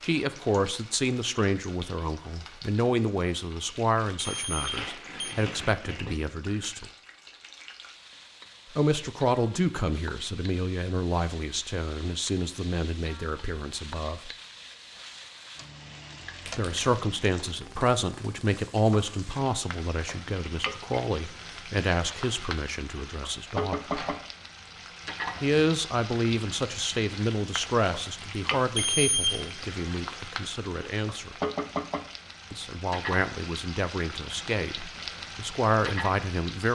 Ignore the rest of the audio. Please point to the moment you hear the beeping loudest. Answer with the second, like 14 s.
29 s.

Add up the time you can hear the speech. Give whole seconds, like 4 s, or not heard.
30 s.